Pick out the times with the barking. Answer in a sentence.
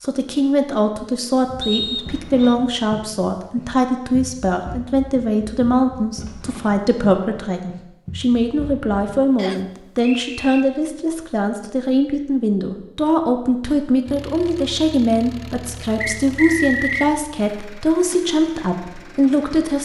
You can't hear the barking here.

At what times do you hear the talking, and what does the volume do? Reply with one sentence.
You can hear the talking from 0.0 to 19.7 s, at a steady volume.